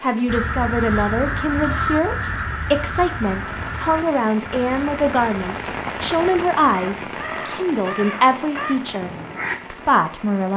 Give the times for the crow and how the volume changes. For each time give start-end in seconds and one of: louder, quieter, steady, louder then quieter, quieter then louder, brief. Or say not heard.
0.2-9.6 quieter then louder.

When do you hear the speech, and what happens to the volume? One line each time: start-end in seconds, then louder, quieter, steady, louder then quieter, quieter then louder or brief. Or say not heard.
0.0-9.1 steady
9.7-10.5 brief.